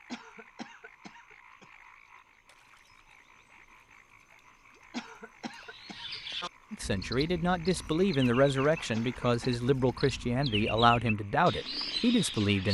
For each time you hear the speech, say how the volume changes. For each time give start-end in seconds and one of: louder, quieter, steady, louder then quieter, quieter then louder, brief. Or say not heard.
6.7-12.6 steady.